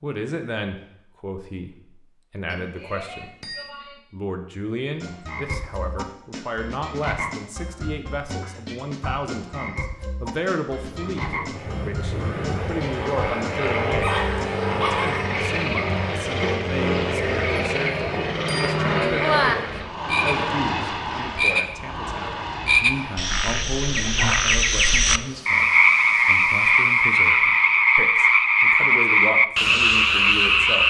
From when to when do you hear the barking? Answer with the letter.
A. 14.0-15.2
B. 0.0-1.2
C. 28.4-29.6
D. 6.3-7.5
A.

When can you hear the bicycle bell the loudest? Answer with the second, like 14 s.
19 s.